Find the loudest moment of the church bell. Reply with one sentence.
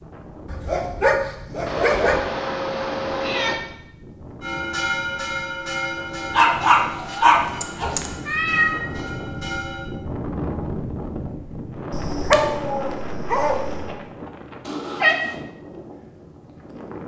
The volume of the church bell peaks at 5 seconds.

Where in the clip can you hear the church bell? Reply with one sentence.
You can hear the church bell from 4.4 to 9.9 s.